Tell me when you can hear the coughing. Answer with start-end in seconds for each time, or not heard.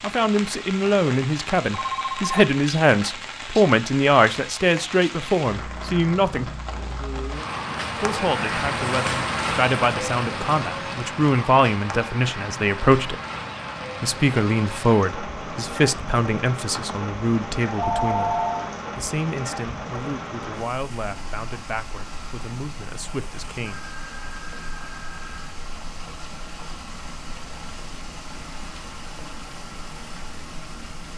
not heard.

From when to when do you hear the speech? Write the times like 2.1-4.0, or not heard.
0.0-6.6, 8.0-13.2, 14.0-23.9.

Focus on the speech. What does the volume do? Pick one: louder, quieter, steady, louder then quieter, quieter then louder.
quieter.